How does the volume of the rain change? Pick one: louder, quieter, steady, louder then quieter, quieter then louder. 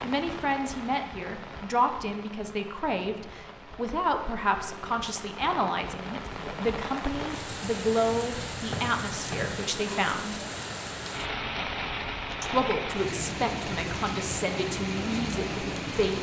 louder.